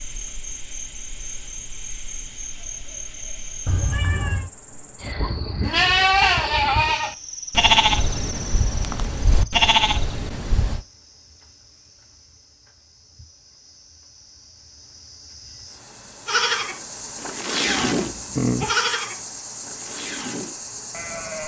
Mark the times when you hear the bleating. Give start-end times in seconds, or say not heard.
5.7-10.8, 16.2-21.4.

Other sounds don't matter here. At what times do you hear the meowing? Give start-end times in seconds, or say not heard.
3.6-4.5, 17.6-18.8.